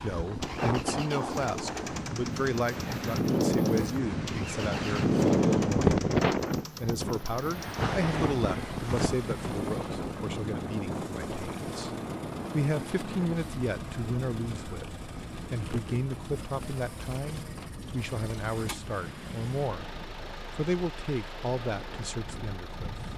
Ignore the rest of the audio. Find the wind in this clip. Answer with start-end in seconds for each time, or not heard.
0.0-23.1.